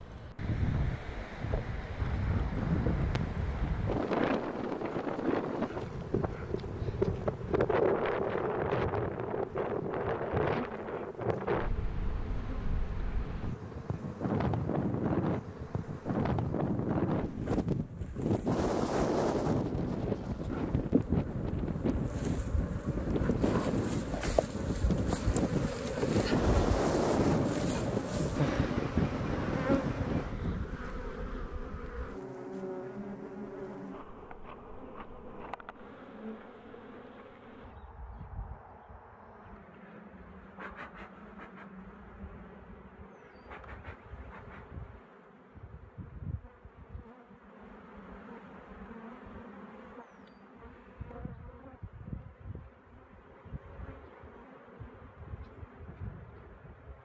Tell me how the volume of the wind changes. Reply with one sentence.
The loudness of the wind stays about the same.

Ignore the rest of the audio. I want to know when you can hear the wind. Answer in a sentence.
You can hear the wind from 0.0 to 30.8 s.